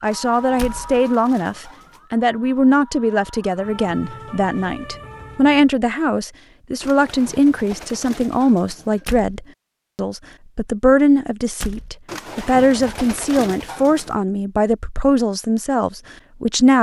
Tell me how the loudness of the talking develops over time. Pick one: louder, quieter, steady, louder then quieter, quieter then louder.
steady.